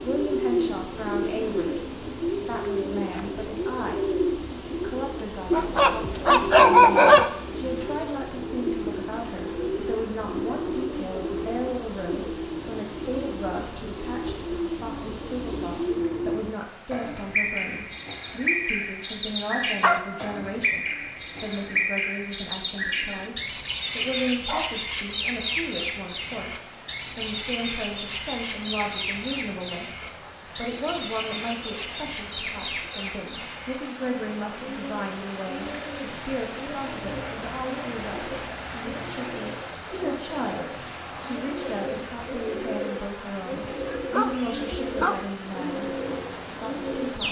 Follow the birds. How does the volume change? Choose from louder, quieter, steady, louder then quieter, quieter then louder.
quieter.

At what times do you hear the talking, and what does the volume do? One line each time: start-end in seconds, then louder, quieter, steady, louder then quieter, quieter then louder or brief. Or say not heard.
0.0-47.2 steady.